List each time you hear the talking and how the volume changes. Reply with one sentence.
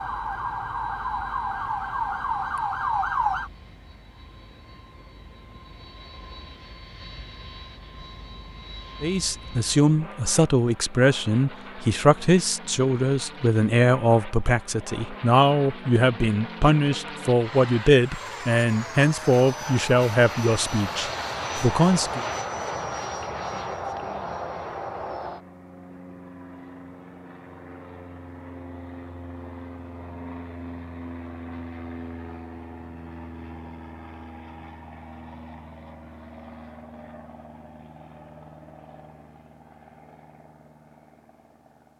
You can hear the talking from 9.0 to 22.2 s, at a steady volume.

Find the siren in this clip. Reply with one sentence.
You can hear the siren from 0.0 to 3.5 s.